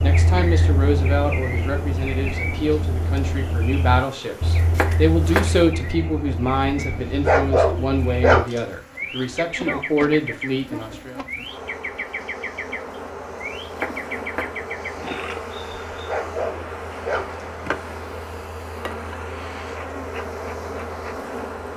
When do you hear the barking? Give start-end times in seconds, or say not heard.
7.0-8.6, 15.9-17.4.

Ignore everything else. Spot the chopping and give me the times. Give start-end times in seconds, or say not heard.
4.8-5.5, 13.8-14.6.